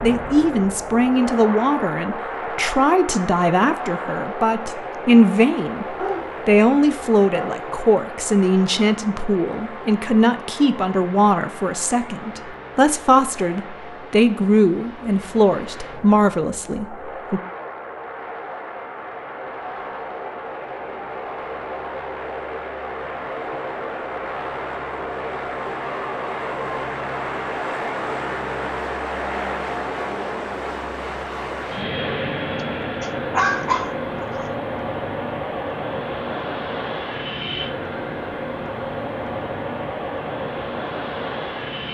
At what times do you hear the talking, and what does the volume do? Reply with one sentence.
You can hear the talking from 0.0 to 17.4 s, at a steady volume.